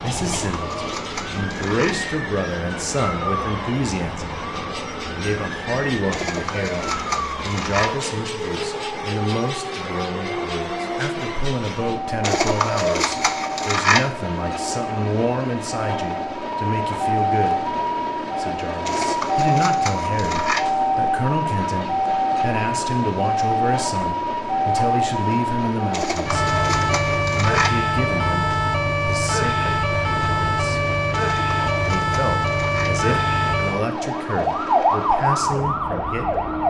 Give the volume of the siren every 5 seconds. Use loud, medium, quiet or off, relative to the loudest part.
medium, medium, medium, loud, loud, loud, loud, loud.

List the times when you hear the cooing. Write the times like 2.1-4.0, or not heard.
0.1-2.0, 6.1-8.0, 12.2-14.1, 18.9-20.7, 25.9-27.8, 31.1-33.0.